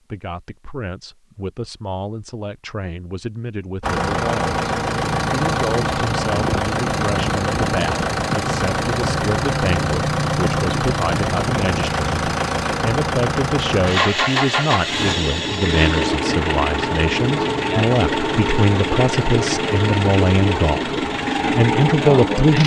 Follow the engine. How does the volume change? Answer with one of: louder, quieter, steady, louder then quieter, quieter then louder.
steady.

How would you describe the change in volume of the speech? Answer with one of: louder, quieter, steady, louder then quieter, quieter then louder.
louder.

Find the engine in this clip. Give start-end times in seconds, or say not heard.
3.8-22.6.